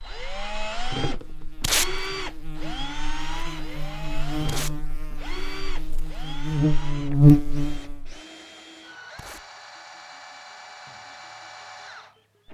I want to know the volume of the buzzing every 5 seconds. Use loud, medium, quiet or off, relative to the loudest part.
quiet, loud, off.